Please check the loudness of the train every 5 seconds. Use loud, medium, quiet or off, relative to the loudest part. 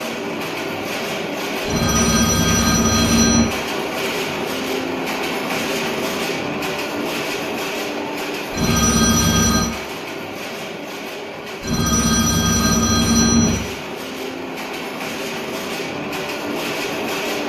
loud, loud, medium, loud.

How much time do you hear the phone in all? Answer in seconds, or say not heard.
5 s.